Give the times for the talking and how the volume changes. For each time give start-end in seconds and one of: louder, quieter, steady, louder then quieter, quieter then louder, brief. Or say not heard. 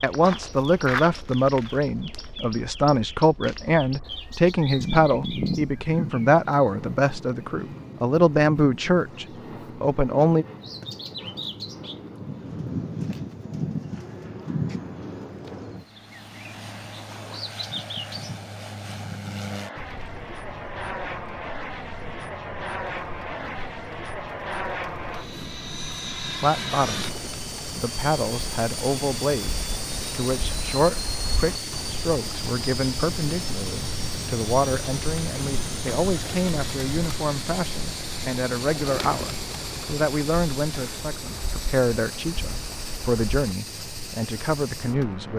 0.0-10.4 steady
26.4-45.3 steady.